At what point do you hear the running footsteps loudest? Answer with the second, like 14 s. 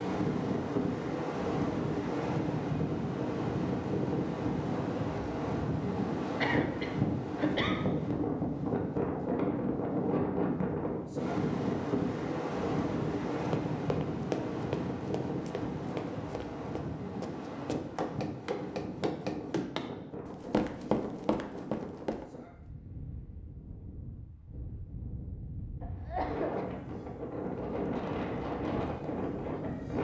21 s.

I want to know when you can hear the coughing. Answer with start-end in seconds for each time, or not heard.
6.4-7.8, 25.8-26.6.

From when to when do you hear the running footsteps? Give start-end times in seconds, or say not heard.
13.4-22.2.